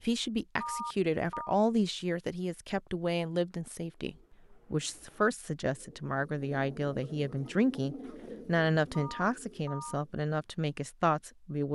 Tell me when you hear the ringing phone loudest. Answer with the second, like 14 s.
1 s.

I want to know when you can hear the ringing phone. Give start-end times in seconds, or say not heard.
0.6-1.6, 8.9-10.0.